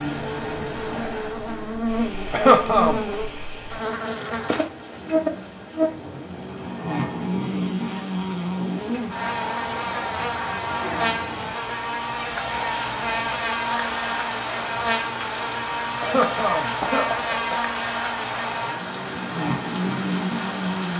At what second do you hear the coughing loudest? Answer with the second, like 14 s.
3 s.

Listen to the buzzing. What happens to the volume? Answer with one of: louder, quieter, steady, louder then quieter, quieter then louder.
steady.